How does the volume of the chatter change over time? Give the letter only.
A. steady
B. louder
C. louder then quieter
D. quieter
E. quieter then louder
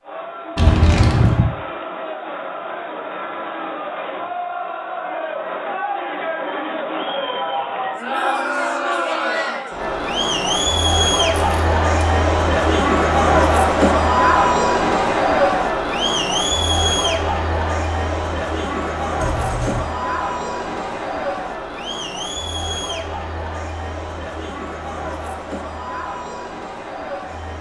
C.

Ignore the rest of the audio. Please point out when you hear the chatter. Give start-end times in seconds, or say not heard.
0.0-27.5.